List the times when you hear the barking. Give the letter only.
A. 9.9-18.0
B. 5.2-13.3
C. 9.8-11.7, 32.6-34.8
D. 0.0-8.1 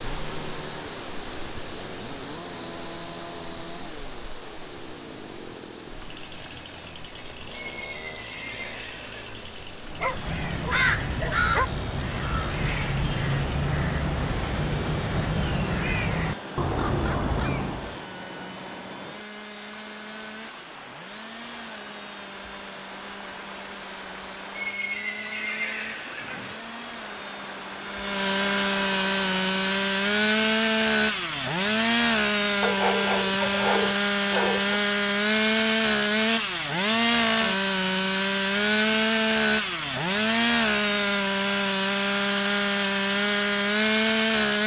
C.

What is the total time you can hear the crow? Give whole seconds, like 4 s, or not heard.
8 s.